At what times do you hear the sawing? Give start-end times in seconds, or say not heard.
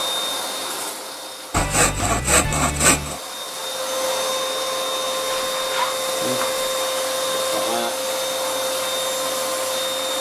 1.5-3.2, 5.2-6.7.